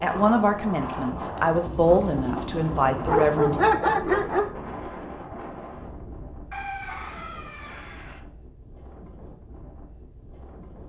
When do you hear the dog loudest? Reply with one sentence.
The loudest moment of the dog is at 4 seconds.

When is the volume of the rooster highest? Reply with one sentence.
The loudest moment of the rooster is at 7 seconds.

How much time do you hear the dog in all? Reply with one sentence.
You can hear the dog for 3 seconds altogether.